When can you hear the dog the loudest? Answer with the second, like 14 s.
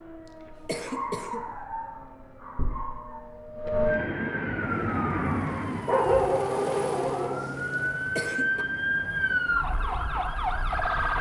6 s.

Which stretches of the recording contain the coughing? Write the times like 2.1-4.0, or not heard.
0.7-1.6, 8.2-8.7.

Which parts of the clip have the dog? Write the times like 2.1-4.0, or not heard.
0.8-3.2, 5.8-7.4.